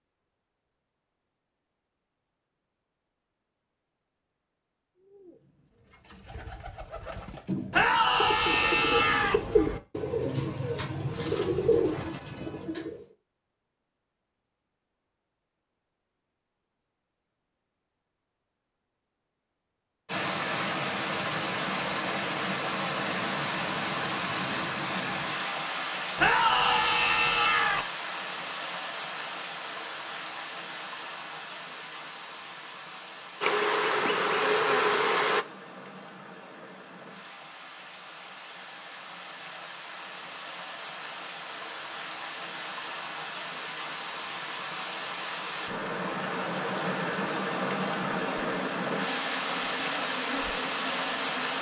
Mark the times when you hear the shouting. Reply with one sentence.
The shouting can be heard from 7.7 to 9.4 s and from 26.1 to 27.9 s.